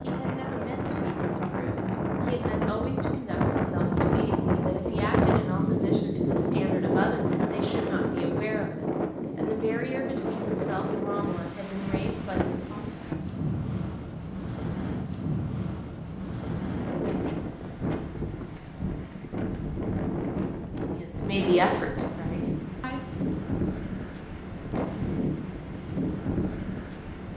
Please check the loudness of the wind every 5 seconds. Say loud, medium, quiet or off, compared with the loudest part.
loud, loud, medium, medium, medium, medium.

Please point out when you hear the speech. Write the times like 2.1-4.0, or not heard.
0.0-12.8, 20.9-23.0.